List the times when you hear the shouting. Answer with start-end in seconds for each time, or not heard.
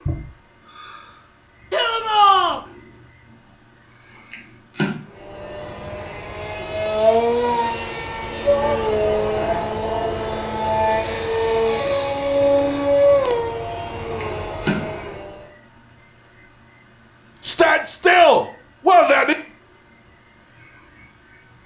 1.7-2.6, 8.4-10.1, 17.4-19.4.